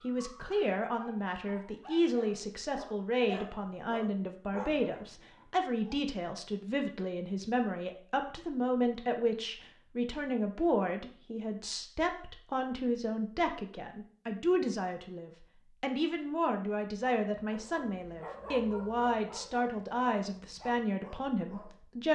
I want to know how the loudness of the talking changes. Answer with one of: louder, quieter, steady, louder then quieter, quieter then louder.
steady.